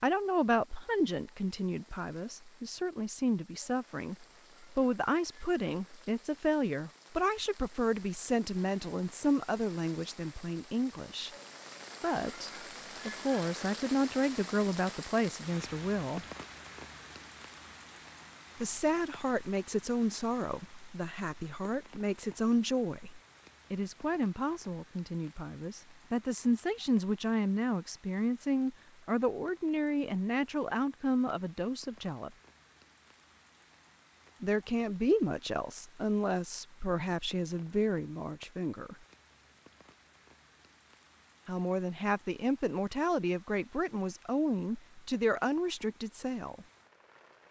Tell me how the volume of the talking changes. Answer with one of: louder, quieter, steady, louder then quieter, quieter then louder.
steady.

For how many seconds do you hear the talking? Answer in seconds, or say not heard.
39 s.